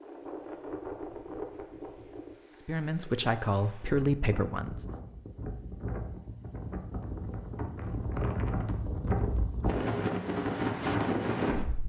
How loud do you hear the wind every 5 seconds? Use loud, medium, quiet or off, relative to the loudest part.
quiet, medium, loud.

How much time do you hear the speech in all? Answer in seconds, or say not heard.
2 s.